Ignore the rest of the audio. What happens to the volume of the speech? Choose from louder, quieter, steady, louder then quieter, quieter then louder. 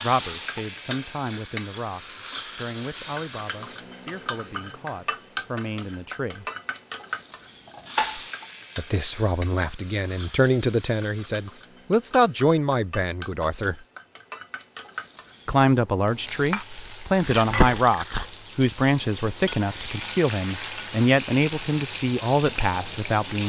louder.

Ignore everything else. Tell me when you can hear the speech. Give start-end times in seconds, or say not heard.
0.0-6.5, 8.8-13.8, 15.4-23.4.